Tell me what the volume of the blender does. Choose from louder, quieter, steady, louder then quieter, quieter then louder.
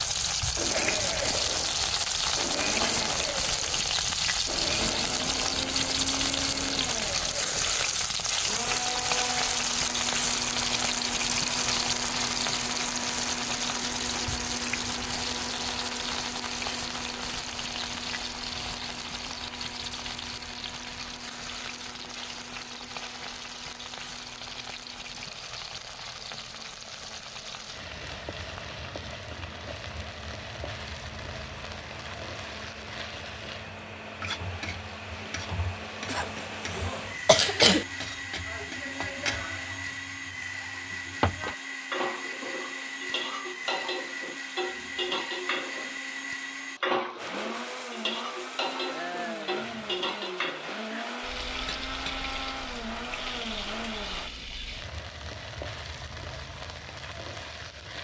quieter then louder.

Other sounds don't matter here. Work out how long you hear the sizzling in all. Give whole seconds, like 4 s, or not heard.
58 s.